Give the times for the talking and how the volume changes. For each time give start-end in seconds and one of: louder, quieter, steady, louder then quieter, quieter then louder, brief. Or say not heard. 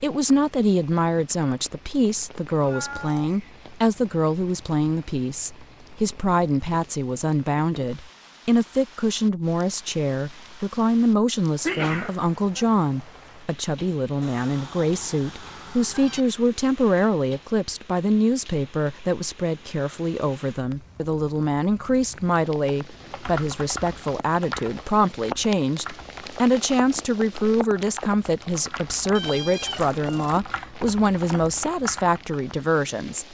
0.0-33.2 steady.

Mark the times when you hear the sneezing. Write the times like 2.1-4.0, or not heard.
11.7-12.7.